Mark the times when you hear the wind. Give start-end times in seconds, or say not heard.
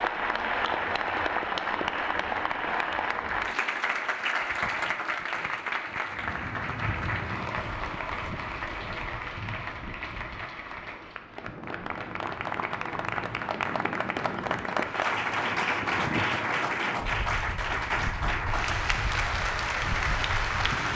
6.0-20.9.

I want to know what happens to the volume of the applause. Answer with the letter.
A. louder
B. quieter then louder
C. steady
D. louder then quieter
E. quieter
B.